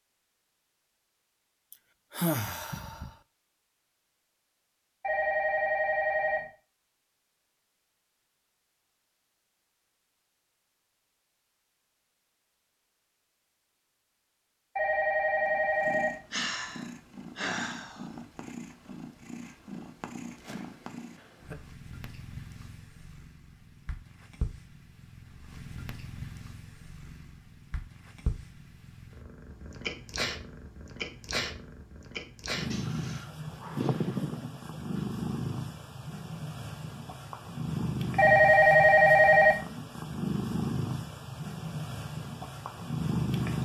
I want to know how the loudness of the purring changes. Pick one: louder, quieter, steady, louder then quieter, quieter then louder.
louder.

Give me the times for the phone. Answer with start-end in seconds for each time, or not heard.
5.0-6.5, 14.8-16.2, 38.1-39.6.